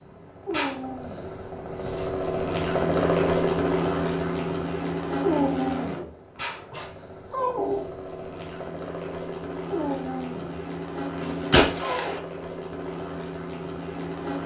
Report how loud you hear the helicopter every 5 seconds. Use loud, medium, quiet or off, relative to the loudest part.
loud, medium, medium.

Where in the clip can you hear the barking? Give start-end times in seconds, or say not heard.
0.5-2.1, 5.2-7.9, 9.7-12.2.